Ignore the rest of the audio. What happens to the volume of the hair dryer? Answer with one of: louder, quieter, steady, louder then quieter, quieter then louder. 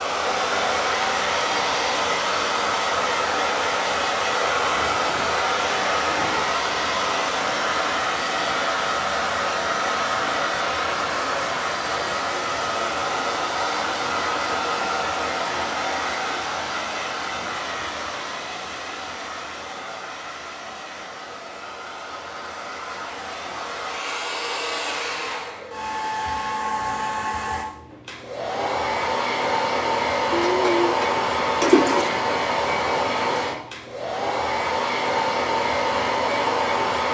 quieter then louder.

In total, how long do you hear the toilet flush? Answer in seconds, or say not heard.
2 s.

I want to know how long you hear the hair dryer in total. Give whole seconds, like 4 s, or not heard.
37 s.